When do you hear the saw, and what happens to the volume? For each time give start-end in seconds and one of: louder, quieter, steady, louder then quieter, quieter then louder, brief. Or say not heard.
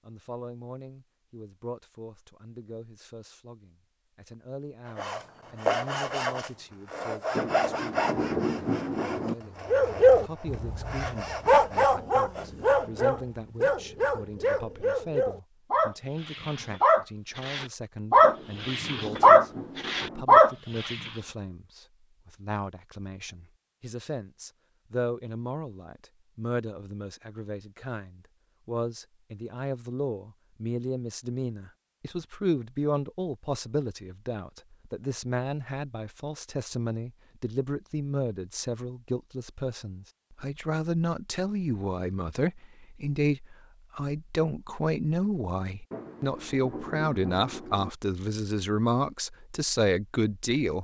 5.0-13.2 quieter.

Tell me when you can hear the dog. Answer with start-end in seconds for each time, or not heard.
9.7-21.1.